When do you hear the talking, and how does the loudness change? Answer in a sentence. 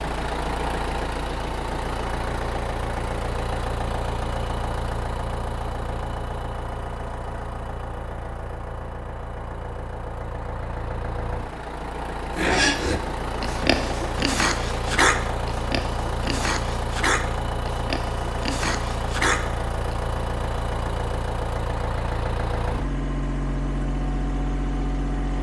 The talking can't be heard in this clip.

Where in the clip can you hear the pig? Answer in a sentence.
You can hear the pig from 12.3 to 19.9 s.